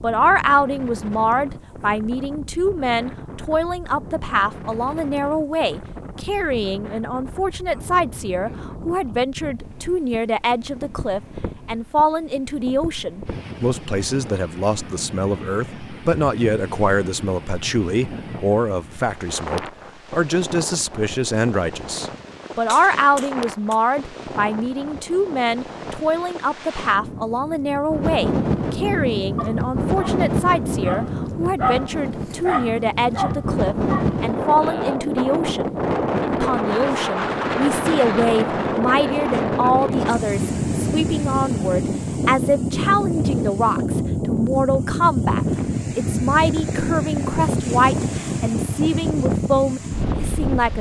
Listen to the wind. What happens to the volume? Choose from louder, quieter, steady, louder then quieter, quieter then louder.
louder.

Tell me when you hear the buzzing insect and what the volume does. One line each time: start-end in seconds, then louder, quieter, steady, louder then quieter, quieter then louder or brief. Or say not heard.
not heard.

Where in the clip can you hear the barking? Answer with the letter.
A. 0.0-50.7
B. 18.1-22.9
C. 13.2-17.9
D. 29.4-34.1
D.